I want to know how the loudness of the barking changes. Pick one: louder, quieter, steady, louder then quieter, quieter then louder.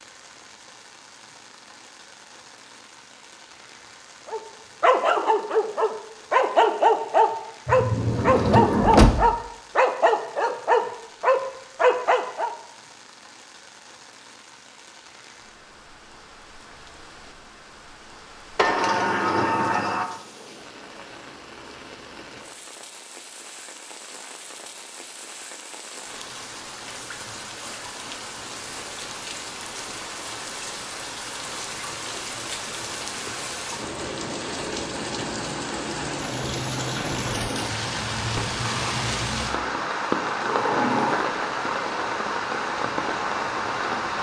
steady.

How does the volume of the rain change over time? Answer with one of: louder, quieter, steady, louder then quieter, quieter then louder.
louder.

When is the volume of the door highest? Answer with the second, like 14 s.
9 s.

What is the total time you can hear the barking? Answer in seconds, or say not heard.
8 s.